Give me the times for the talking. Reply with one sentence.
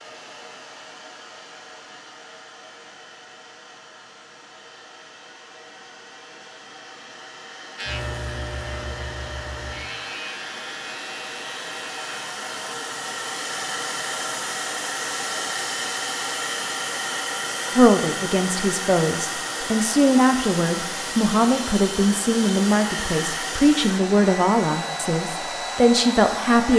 The talking can be heard from 17.8 to 26.7 s.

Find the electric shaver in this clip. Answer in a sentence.
You can hear the electric shaver from 7.8 to 12.0 s.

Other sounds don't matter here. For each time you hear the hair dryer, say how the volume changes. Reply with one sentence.
You can hear the hair dryer from 0.0 to 26.7 s, getting louder.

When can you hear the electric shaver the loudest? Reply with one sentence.
The volume of the electric shaver peaks at 8 seconds.